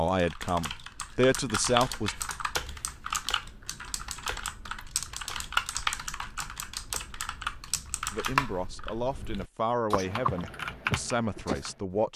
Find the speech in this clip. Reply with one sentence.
You can hear the speech from 0.0 to 2.1 s and from 8.1 to 12.1 s.